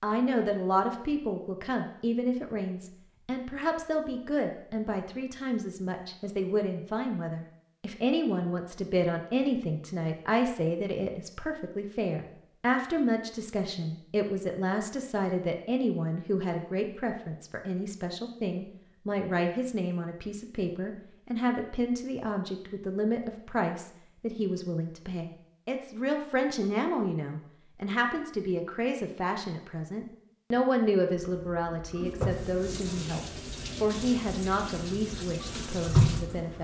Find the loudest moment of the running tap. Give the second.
36 s.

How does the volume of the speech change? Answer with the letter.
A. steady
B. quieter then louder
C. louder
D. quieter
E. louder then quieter
A.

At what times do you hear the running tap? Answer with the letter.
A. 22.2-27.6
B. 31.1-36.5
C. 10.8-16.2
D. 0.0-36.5
B.